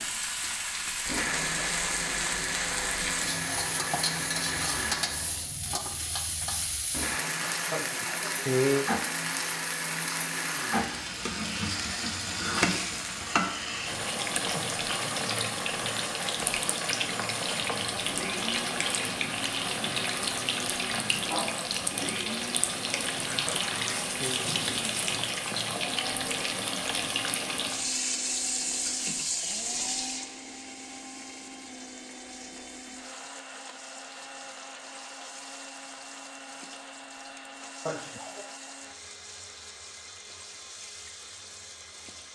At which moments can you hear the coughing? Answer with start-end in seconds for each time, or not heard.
7.7-8.9, 23.4-24.4, 37.9-38.5.